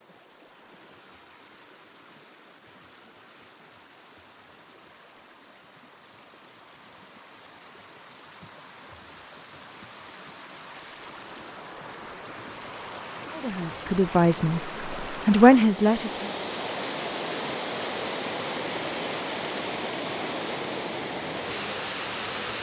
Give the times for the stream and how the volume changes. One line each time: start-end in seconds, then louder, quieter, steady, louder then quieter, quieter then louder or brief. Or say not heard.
0.0-22.5 louder.